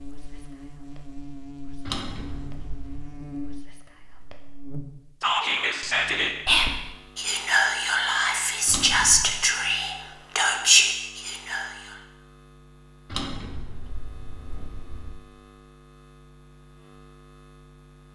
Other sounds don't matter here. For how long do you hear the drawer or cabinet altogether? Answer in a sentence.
You can hear the drawer or cabinet for 4 seconds altogether.